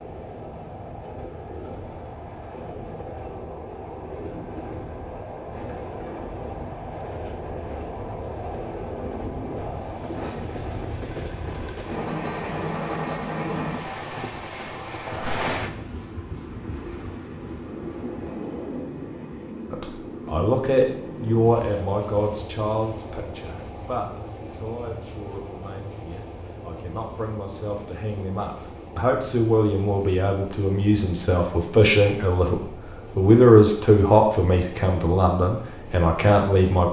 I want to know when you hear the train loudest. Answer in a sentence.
The volume of the train peaks at 13 seconds.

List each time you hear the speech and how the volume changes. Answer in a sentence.
You can hear the speech from 19.7 to 36.8 s, getting quieter then louder.